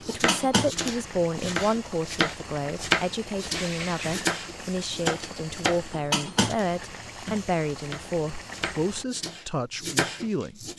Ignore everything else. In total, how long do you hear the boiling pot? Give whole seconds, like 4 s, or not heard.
9 s.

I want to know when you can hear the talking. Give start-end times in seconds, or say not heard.
0.1-10.7.